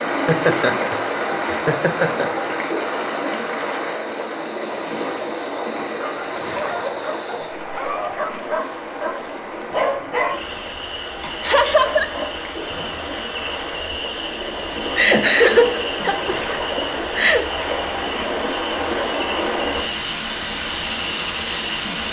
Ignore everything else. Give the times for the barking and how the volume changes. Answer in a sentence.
The barking can be heard from 6.0 to 12.9 s, getting louder then quieter.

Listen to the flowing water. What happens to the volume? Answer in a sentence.
The loudness of the flowing water goes down, then up.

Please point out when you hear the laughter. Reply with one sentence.
You can hear the laughter from 0.1 to 2.3 s, from 11.4 to 12.2 s and from 14.9 to 17.4 s.